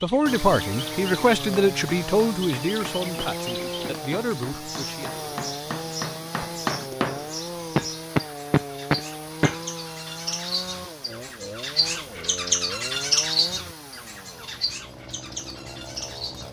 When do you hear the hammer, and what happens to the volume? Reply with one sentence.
You can hear the hammer from 1.7 to 9.6 s, getting louder.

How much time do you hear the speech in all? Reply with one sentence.
You can hear the speech for 5 seconds altogether.